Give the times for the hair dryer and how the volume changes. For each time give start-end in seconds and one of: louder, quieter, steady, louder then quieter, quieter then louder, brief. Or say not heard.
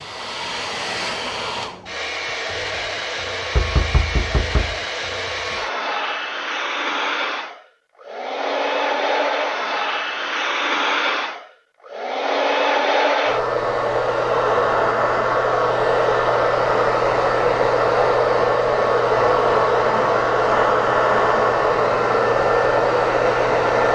0.0-23.9 louder.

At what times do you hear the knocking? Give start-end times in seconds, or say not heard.
3.5-4.8.